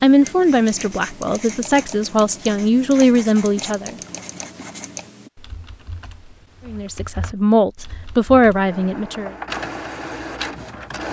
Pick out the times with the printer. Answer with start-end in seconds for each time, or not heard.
8.6-11.0.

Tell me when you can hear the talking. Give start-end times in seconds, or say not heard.
0.0-4.0, 6.7-9.3.